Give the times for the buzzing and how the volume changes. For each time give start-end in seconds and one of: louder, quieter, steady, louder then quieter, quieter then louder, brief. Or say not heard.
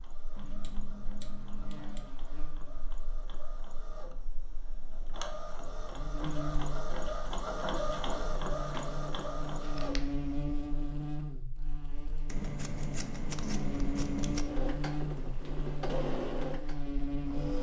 0.0-17.5 louder.